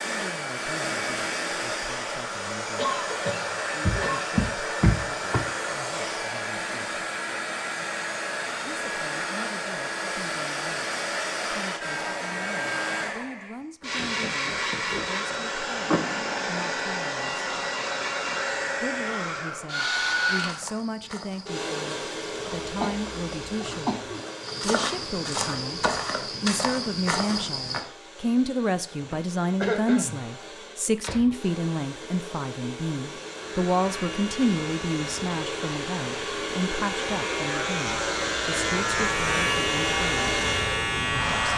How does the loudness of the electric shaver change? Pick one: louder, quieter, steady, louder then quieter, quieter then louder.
louder.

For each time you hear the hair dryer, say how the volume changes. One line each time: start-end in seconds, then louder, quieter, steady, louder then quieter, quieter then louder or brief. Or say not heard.
0.0-41.5 quieter then louder.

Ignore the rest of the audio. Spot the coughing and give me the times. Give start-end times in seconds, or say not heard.
2.8-4.2, 22.6-24.2, 29.0-30.2.